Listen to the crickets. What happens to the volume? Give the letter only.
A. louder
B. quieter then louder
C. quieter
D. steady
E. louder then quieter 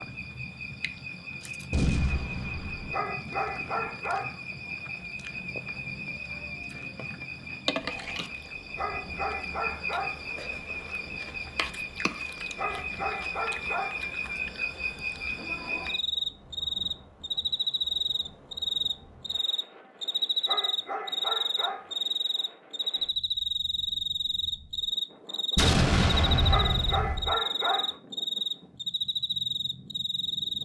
A.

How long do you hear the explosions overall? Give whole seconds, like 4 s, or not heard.
3 s.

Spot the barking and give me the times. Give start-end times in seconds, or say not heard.
2.9-4.4, 8.8-10.2, 12.6-14.1, 20.4-21.9, 26.4-27.9.